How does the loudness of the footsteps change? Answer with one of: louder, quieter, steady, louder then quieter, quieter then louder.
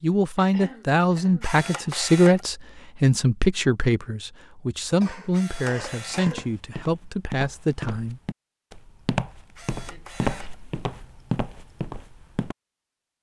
louder.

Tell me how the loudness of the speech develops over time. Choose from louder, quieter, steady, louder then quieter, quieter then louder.
quieter.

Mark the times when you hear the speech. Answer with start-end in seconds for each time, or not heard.
0.0-8.2.